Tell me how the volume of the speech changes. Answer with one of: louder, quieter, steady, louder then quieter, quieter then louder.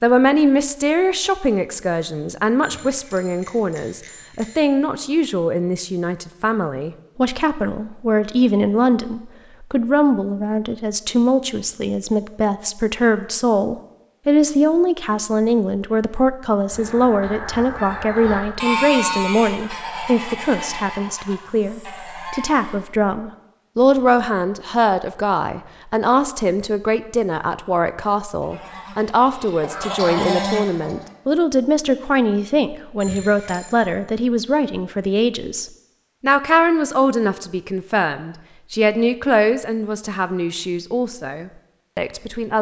steady.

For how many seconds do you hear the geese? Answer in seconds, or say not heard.
9 s.